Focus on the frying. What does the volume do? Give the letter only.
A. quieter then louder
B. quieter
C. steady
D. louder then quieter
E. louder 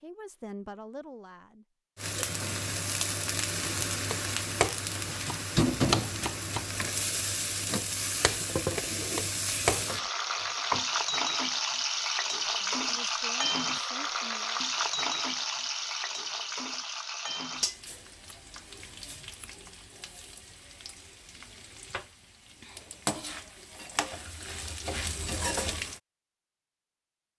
B.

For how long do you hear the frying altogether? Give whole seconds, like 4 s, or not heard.
24 s.